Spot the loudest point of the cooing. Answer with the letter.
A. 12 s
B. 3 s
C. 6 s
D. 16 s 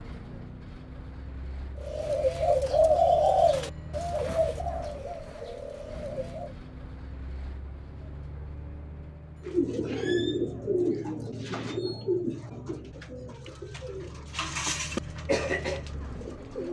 B.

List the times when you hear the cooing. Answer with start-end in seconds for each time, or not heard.
1.8-6.5, 9.4-16.6.